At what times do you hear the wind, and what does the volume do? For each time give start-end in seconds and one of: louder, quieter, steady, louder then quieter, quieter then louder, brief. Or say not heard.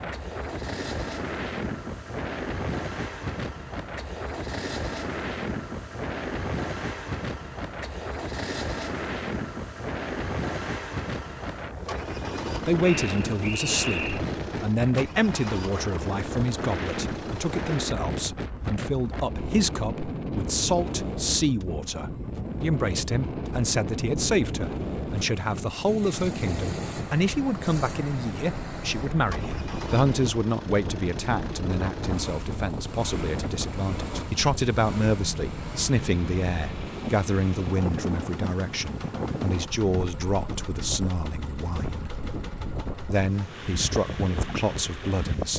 0.0-45.5 steady.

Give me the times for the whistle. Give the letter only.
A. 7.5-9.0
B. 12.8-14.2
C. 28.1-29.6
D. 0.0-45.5
B.